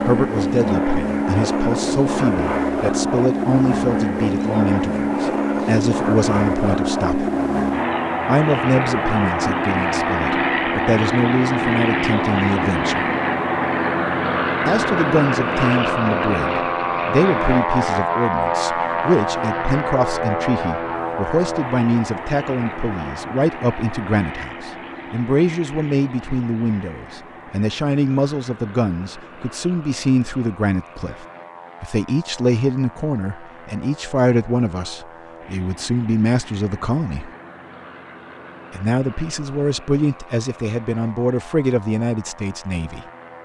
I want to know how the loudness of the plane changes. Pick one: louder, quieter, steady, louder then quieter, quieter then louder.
quieter.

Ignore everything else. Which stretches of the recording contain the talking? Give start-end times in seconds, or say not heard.
0.0-7.3, 8.2-13.1, 14.7-37.3, 38.7-43.0.